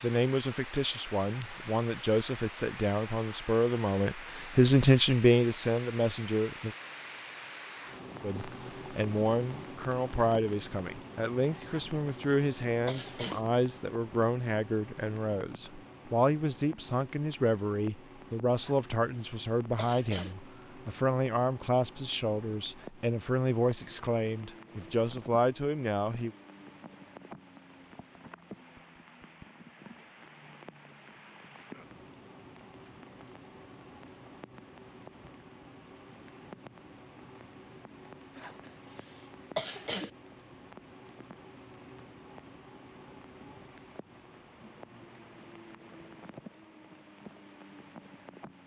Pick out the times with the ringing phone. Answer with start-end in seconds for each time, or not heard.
not heard.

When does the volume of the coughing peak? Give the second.
40 s.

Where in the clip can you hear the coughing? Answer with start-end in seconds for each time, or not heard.
11.7-13.4, 18.6-20.4, 38.4-40.1.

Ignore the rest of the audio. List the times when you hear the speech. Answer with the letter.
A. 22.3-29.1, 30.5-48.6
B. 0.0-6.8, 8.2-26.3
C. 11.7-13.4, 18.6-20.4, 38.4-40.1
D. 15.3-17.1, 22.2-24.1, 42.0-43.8
B.